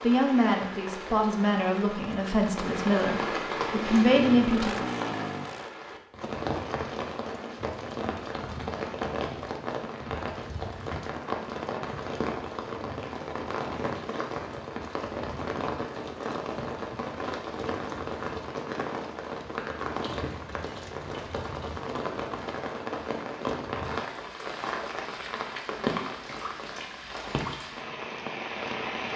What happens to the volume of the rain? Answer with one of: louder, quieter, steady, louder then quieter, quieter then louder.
steady.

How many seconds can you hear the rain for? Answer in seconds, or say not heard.
29 s.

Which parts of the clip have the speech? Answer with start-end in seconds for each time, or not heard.
0.0-4.8.